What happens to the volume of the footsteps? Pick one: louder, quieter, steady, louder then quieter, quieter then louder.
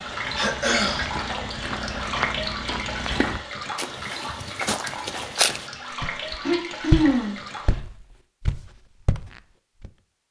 louder then quieter.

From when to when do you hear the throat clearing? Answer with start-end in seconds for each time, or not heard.
0.3-1.1, 6.5-7.3.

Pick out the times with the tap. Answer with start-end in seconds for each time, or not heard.
0.0-7.8.